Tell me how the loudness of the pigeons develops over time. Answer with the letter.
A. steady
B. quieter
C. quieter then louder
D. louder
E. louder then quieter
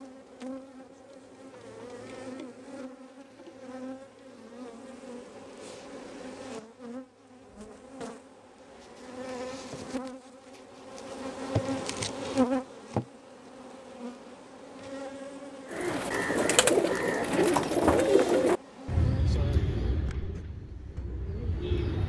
B.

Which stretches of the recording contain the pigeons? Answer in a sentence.
You can hear the pigeons from 15.7 to 22.0 s.